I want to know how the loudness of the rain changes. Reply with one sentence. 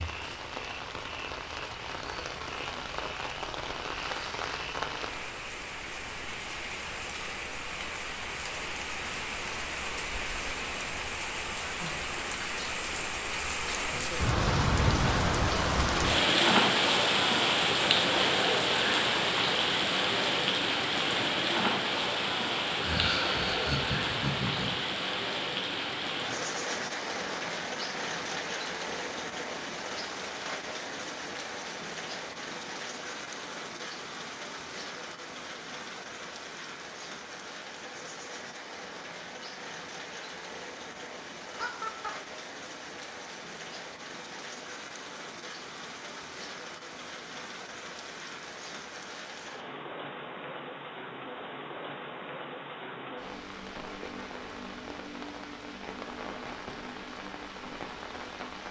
The volume of the rain goes up, then down.